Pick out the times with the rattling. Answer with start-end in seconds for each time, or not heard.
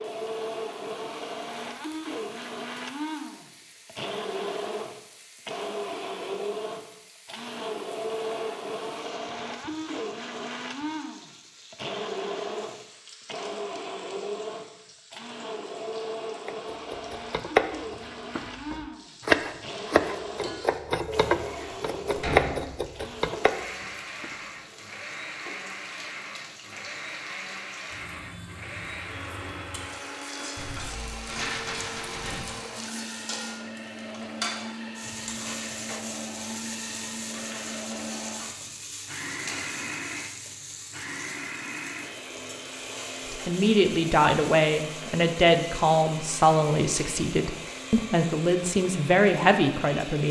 31.2-32.5.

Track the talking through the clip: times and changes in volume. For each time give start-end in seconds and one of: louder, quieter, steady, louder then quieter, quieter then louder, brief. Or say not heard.
43.3-50.2 steady.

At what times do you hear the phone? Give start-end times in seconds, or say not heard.
not heard.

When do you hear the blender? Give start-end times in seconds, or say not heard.
0.0-50.2.